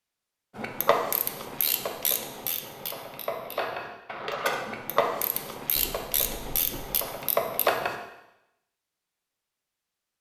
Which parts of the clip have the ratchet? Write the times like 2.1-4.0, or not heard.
0.6-8.0.